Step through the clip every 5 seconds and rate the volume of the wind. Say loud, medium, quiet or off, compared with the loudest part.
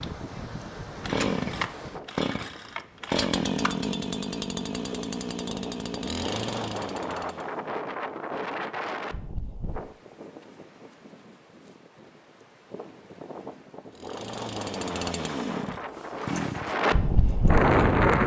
quiet, medium, quiet, loud.